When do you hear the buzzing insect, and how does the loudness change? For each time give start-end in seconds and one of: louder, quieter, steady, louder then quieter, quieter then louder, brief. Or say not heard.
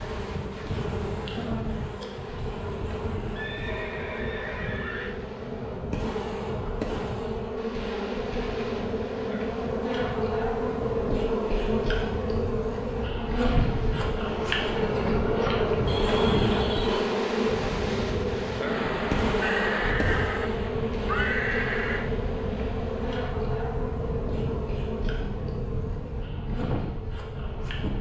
0.0-27.9 louder then quieter.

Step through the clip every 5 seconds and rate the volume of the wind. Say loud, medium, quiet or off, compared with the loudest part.
medium, medium, medium, loud, loud, loud.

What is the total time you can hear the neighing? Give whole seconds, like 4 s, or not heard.
6 s.